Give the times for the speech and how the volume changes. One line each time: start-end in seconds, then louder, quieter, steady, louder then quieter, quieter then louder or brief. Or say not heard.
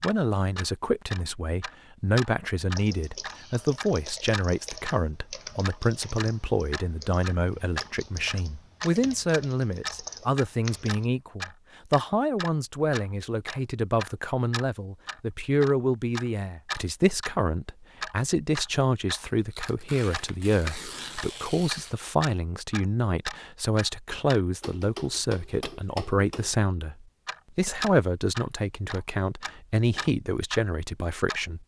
0.0-31.6 steady.